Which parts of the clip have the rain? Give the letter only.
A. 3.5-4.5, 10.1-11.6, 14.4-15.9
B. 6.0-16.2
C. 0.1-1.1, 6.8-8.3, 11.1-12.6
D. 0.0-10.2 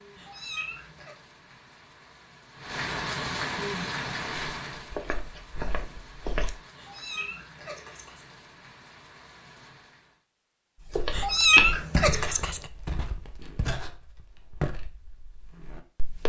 D.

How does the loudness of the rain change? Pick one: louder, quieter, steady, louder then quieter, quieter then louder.
louder then quieter.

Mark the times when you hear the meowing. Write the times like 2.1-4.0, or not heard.
0.1-1.1, 6.8-8.3, 11.1-12.6.